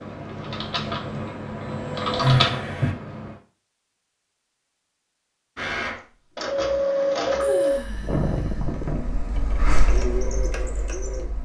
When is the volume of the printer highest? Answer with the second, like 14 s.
7 s.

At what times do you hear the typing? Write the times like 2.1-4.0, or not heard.
0.0-3.4.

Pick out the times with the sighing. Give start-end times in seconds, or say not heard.
2.2-2.9, 7.4-9.2.